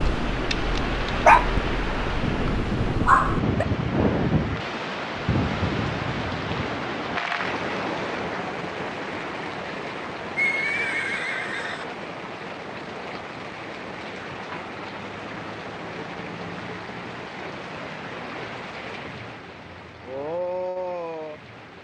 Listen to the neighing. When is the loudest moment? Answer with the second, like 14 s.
11 s.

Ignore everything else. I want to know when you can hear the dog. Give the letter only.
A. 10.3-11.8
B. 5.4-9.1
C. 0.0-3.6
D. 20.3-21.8
C.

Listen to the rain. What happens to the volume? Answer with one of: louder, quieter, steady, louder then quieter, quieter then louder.
quieter.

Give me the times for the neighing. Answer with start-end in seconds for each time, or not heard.
10.3-11.8.